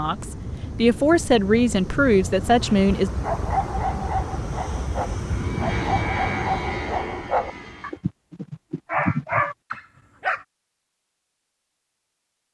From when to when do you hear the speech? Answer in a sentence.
The speech can be heard from 0.0 to 3.1 s.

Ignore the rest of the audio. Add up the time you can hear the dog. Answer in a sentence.
The dog can be heard for 8 seconds in total.